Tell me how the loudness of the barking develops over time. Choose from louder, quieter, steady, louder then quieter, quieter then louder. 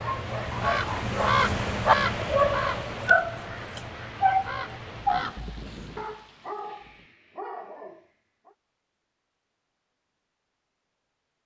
quieter.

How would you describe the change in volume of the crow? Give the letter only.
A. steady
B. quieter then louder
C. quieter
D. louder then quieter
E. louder
B.